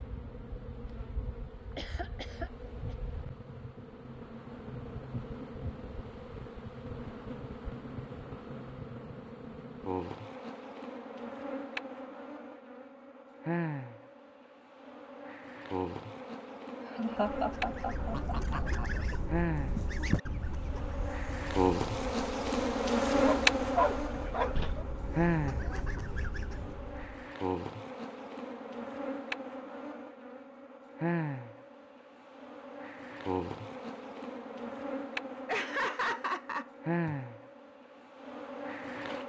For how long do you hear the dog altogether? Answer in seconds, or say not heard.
2 s.